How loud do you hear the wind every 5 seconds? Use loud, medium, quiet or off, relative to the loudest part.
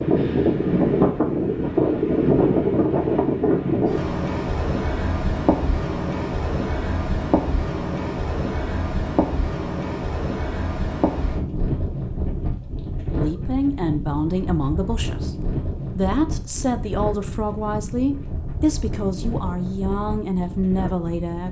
loud, medium, medium, medium, quiet.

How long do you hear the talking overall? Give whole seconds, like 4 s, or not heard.
8 s.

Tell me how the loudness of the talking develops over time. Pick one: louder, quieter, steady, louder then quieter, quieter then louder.
steady.